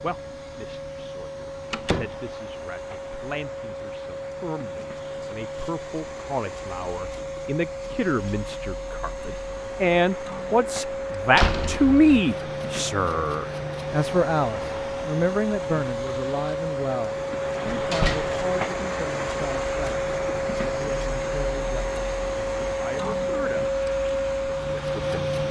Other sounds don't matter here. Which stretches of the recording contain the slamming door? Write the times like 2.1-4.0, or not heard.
1.7-2.1, 11.3-12.1, 17.6-18.4.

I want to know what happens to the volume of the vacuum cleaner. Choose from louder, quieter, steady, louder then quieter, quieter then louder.
louder.